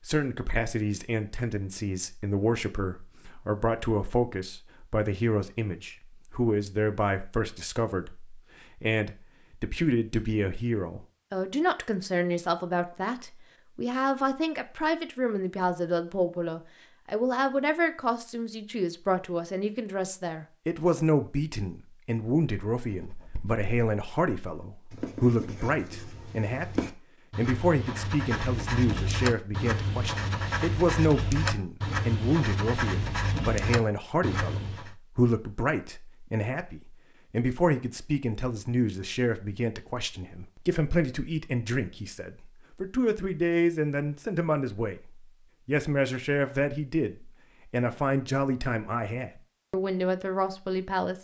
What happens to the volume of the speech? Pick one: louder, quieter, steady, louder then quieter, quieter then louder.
steady.